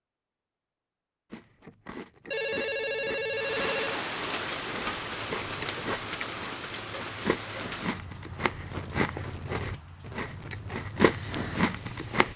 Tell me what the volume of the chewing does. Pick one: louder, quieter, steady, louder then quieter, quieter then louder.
louder.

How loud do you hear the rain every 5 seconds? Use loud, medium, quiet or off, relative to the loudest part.
loud, medium, quiet.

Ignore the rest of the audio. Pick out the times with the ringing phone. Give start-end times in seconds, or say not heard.
2.3-4.0.